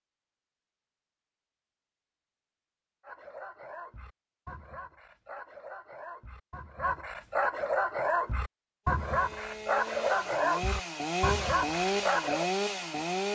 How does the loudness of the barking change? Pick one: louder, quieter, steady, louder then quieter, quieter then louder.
louder.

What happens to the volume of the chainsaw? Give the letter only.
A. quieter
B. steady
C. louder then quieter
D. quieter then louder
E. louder
E.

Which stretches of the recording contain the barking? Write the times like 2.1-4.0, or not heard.
3.0-12.5.